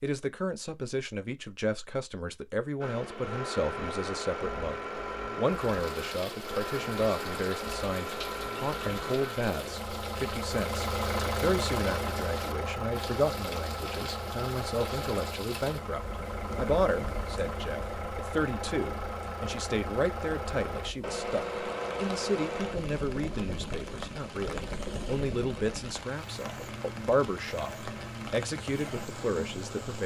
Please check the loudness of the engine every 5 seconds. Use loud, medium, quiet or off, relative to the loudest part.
loud, loud, loud, loud, loud, medium.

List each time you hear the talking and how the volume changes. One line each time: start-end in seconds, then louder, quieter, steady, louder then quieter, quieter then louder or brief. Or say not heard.
0.0-30.0 steady.